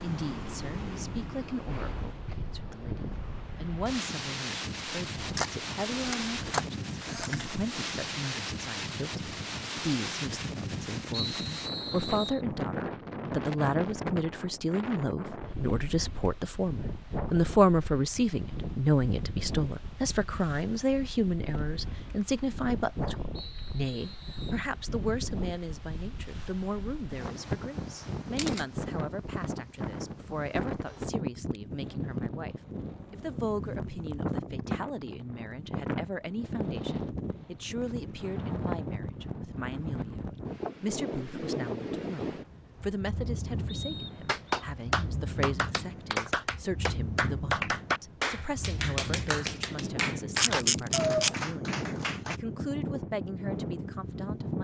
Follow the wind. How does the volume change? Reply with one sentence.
The volume of the wind stays about the same.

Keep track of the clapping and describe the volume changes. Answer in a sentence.
The loudness of the clapping stays about the same.